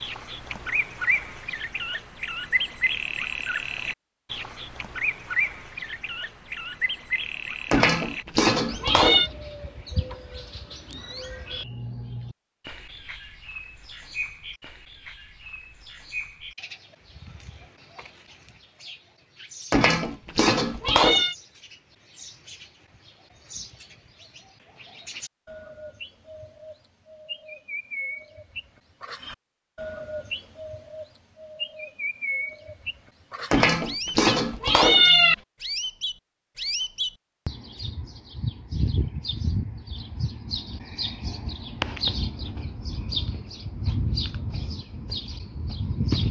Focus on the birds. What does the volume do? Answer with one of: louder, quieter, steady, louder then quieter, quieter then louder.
quieter then louder.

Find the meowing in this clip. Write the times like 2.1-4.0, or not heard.
7.7-9.3, 19.7-21.4, 33.5-35.4.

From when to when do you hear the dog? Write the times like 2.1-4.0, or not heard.
not heard.